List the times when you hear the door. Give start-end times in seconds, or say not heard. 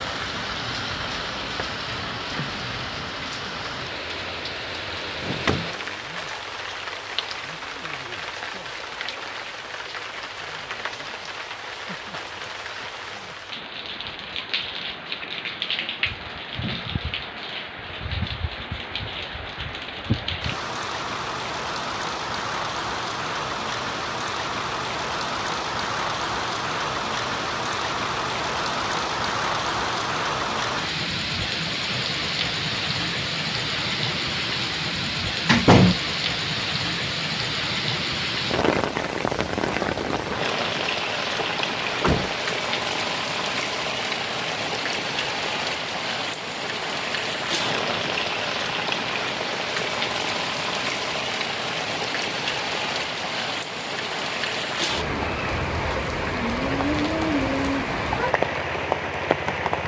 5.2-5.7, 35.0-36.0, 41.4-42.4.